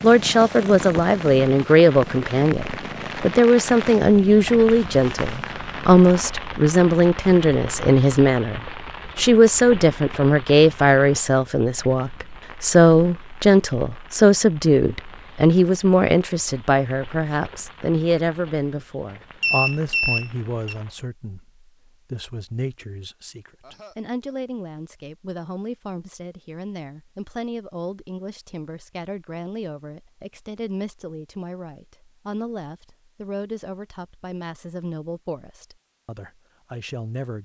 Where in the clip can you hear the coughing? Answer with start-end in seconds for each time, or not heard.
23.6-24.4.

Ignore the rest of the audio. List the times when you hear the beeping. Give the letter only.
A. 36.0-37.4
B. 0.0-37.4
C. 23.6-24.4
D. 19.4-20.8
D.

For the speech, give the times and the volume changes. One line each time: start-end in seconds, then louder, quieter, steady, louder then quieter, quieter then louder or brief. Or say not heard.
0.0-37.4 quieter.